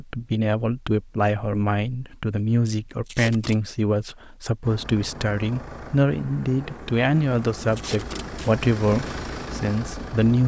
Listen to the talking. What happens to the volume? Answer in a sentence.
The loudness of the talking stays about the same.